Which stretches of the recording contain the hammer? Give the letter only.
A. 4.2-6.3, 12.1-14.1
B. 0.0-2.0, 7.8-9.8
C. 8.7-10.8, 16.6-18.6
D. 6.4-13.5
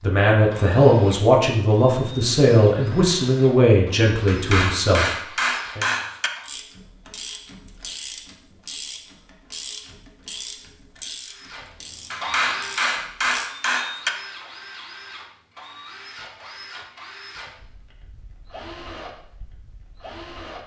A.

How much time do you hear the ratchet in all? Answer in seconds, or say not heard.
7 s.